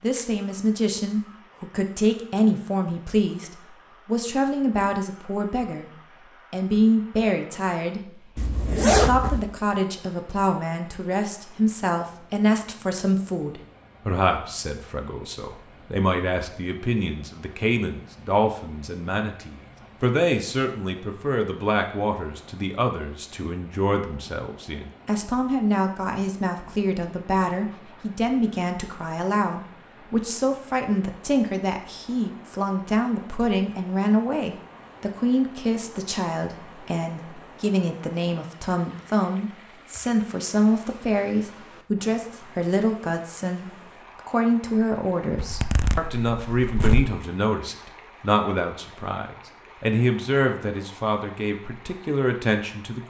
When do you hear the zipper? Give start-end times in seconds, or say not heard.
8.3-9.4, 45.4-47.1.